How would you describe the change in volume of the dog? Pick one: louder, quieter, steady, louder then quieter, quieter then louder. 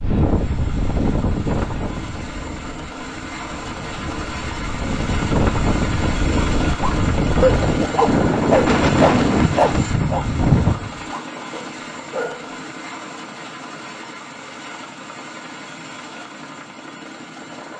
quieter.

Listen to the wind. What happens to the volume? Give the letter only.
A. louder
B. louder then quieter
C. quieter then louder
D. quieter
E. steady
C.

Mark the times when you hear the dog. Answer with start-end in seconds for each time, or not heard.
6.3-12.4.